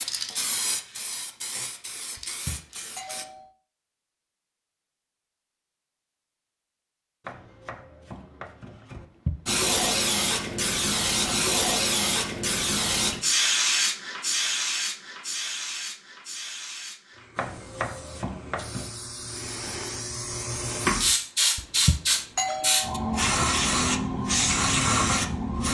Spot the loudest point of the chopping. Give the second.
18 s.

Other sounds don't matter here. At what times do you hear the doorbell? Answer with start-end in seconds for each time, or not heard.
2.1-3.5, 8.9-9.3, 21.6-23.2.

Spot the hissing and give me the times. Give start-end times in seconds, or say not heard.
0.0-3.2, 9.4-25.6.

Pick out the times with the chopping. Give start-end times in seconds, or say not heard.
7.2-9.1, 17.4-18.9.